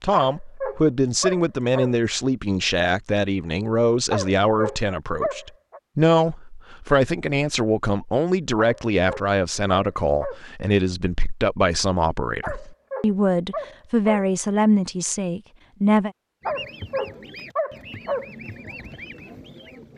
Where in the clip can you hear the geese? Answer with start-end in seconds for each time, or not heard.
16.4-19.9.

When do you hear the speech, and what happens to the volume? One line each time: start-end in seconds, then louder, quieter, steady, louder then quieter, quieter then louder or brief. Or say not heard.
0.0-16.1 steady.